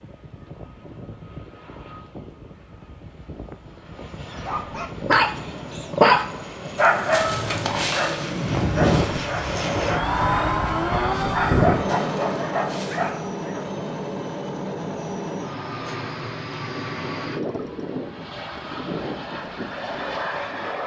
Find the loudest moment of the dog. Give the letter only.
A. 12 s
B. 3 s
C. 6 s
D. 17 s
C.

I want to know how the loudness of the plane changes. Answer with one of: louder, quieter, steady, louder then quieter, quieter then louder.
louder then quieter.